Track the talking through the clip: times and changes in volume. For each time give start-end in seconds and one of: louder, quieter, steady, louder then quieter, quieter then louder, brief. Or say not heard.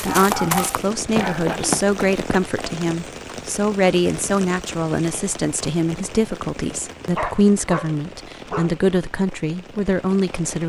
0.0-10.6 steady.